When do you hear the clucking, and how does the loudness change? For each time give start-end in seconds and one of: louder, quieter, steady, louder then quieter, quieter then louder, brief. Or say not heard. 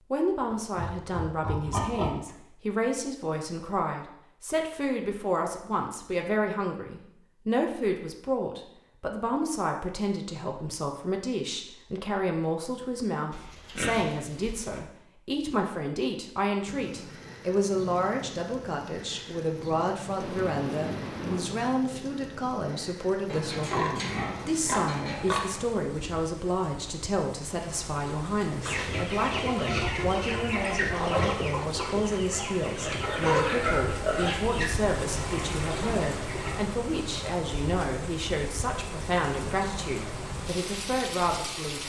28.6-36.6 quieter.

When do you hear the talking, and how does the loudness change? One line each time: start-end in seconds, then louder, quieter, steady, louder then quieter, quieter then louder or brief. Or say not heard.
0.1-41.8 steady.